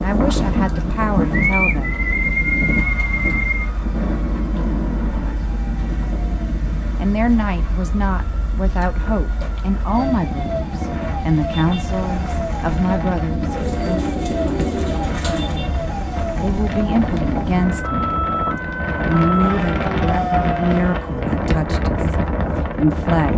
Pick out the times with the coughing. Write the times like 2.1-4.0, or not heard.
not heard.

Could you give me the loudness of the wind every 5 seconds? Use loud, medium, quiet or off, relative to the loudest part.
loud, medium, medium, loud, loud.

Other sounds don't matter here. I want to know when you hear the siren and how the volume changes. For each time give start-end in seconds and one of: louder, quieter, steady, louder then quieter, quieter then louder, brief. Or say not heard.
0.0-21.4 louder.